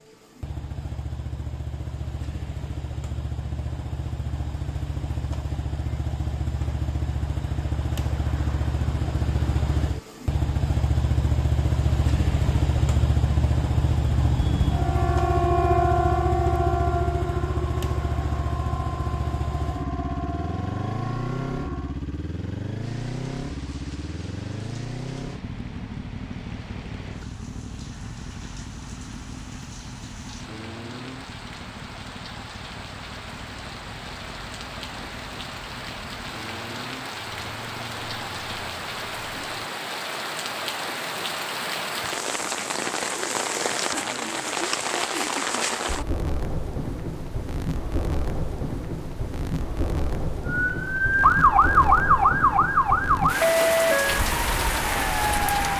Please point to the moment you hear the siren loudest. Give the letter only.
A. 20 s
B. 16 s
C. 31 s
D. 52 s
D.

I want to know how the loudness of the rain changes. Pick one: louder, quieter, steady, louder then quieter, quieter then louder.
louder.